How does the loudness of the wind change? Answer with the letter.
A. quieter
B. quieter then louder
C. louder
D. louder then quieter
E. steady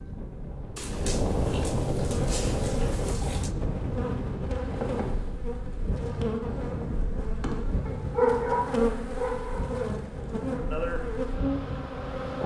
A.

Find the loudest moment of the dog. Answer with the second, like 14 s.
8 s.